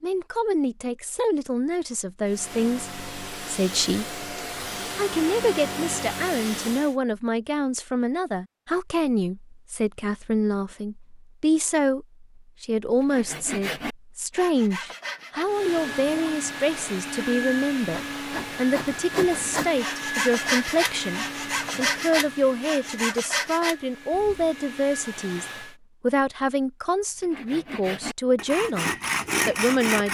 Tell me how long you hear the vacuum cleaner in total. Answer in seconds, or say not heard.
15 s.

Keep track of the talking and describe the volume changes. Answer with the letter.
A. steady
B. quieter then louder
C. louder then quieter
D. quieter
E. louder
A.